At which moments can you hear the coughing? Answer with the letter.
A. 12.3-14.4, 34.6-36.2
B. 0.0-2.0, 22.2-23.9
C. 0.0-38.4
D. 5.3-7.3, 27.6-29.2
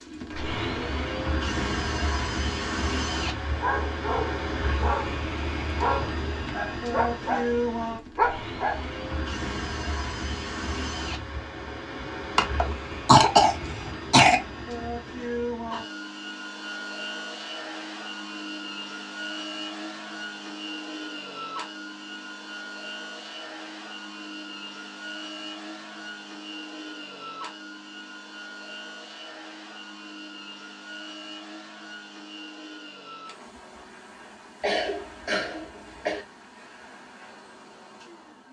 A.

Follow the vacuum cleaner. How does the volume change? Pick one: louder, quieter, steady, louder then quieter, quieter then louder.
quieter.